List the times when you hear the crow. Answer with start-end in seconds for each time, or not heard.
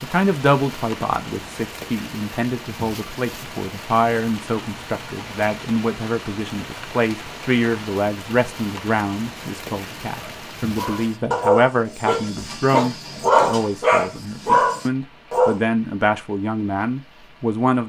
not heard.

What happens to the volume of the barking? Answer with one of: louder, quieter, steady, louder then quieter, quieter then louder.
quieter then louder.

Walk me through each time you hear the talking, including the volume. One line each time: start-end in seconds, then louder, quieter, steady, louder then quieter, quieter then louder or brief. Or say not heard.
0.0-17.8 steady.